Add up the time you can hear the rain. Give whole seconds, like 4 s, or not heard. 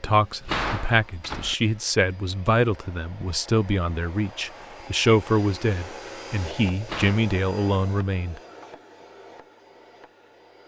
not heard.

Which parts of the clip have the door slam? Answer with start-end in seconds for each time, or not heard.
0.1-1.6, 6.7-7.2.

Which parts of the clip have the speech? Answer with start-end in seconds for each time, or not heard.
0.0-8.4.